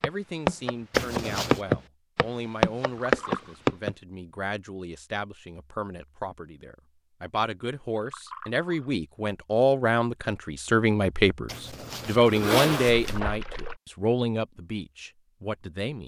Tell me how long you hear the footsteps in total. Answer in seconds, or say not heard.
4 s.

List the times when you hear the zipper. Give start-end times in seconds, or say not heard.
0.9-1.6, 11.4-13.2.